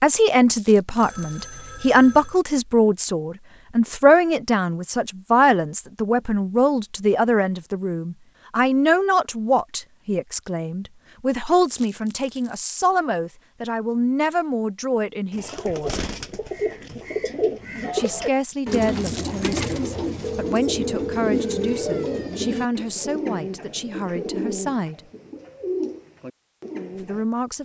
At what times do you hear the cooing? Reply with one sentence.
The cooing can be heard from 15.3 to 27.2 s.